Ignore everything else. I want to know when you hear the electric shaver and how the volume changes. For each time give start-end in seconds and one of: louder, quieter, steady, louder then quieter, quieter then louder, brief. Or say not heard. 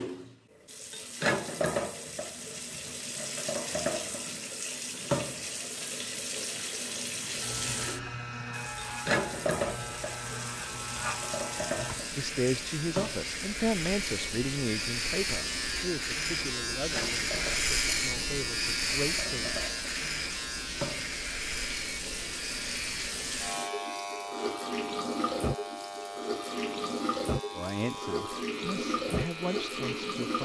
7.3-30.3 louder then quieter.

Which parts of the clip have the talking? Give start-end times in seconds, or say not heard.
12.2-19.6, 27.6-30.3.